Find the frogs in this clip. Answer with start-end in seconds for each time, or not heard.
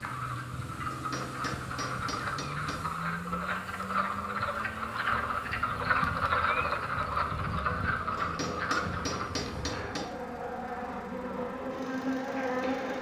0.0-9.3.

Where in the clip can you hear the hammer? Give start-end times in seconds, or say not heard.
0.9-2.9, 8.2-10.2.